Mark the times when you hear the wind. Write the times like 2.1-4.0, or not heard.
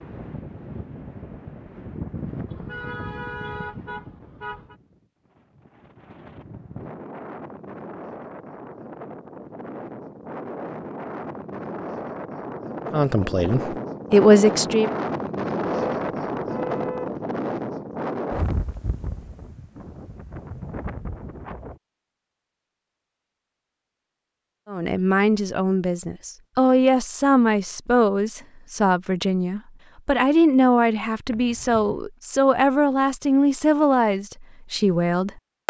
0.0-21.8.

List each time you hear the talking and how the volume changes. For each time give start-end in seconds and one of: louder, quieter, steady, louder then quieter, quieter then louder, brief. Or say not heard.
12.9-14.9 brief
24.6-35.6 steady.